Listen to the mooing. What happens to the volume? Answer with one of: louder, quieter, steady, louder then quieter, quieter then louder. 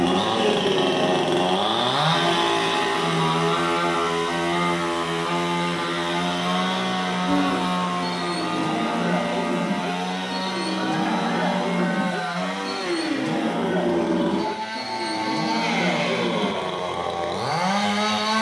steady.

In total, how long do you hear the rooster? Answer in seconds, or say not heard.
2 s.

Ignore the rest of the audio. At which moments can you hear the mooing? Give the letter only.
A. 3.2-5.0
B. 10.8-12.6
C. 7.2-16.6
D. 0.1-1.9
C.